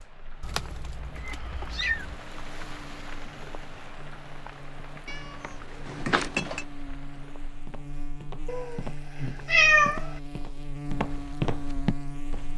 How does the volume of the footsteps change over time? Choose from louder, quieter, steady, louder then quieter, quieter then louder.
louder.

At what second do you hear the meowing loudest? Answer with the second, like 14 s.
10 s.